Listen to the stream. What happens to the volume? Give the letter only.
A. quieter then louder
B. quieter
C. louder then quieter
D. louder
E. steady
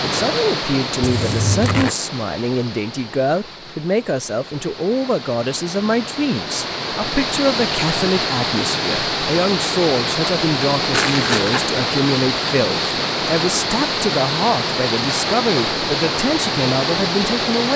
D.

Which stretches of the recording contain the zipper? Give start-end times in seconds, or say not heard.
1.0-1.9, 10.9-11.8.